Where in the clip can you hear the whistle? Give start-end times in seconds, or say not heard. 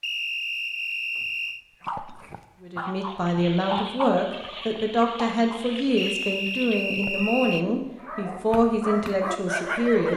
0.0-1.6, 6.0-7.7.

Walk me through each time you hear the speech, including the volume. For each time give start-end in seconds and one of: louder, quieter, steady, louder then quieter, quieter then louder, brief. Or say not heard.
2.6-10.1 steady.